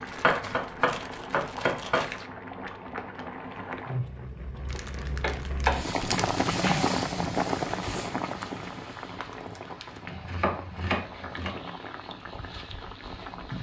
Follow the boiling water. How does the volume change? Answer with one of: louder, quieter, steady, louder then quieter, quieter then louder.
louder then quieter.